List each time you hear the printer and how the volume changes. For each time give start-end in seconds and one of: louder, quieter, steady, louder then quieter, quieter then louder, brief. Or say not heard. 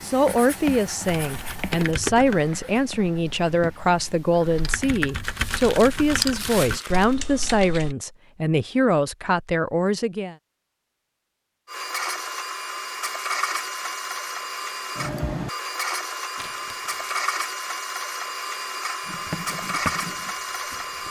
11.7-21.0 steady.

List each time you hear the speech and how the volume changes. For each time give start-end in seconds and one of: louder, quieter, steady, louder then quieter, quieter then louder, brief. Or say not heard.
0.0-10.3 steady.